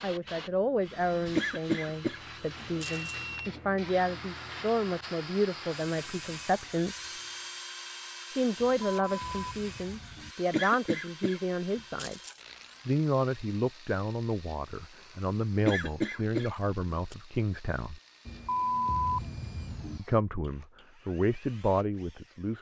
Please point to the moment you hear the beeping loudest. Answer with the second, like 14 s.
19 s.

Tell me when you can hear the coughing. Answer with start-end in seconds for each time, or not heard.
1.4-3.1, 10.5-12.3, 15.7-17.1.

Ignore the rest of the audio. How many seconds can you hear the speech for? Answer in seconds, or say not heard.
19 s.